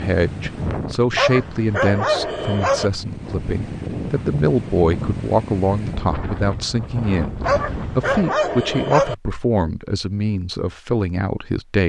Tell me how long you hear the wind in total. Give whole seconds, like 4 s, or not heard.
8 s.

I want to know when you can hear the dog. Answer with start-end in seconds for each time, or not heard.
1.1-2.9, 7.4-9.2.